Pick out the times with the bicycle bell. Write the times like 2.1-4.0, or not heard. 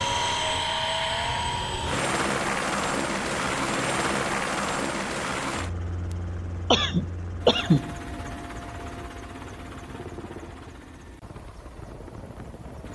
not heard.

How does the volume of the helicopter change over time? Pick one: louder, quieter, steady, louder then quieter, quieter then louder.
quieter.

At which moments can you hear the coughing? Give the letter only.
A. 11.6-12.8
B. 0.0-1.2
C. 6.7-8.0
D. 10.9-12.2
C.